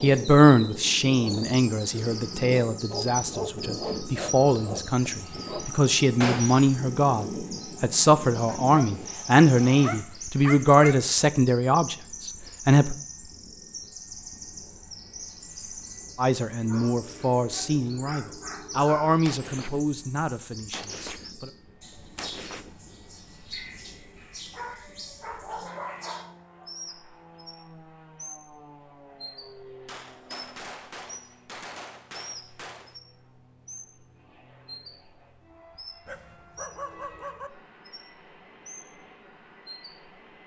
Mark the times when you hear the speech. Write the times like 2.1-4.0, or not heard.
0.0-12.9, 16.1-21.5.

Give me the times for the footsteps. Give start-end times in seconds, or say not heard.
not heard.